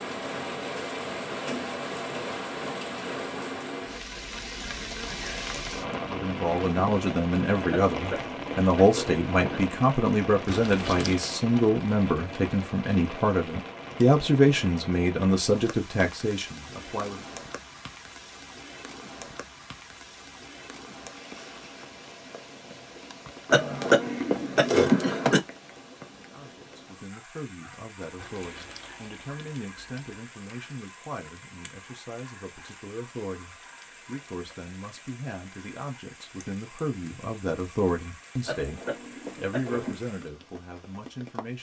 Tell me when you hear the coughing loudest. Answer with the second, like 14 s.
25 s.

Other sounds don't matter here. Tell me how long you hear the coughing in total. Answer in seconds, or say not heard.
5 s.